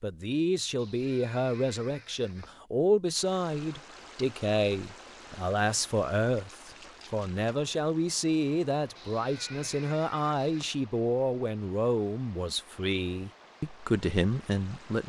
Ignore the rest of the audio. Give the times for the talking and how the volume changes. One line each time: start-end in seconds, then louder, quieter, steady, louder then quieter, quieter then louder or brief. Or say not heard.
0.0-15.0 steady.